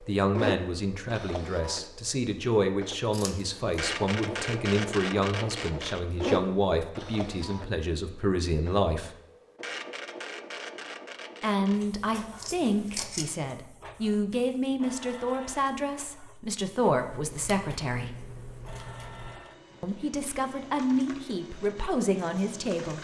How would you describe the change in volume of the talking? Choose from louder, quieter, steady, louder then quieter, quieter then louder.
steady.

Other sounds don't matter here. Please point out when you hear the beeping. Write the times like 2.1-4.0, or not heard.
not heard.